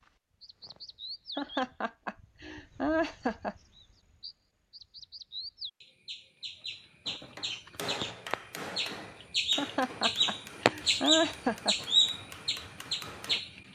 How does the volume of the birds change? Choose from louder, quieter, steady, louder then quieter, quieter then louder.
louder.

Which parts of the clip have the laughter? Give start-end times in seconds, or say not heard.
1.4-3.5, 9.6-11.8.